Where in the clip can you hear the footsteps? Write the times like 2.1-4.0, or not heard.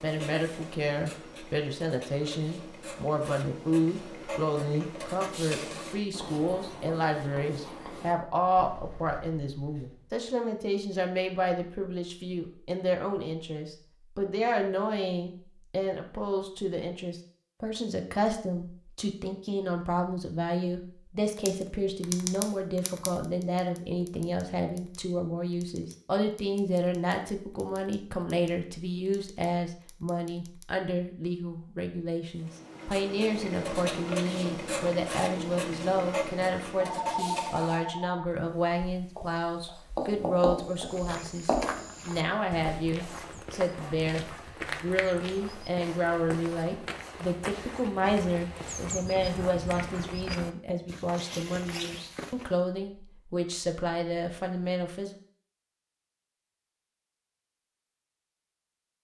40.5-52.5.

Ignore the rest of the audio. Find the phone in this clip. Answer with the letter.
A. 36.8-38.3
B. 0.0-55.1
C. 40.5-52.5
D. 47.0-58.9
A.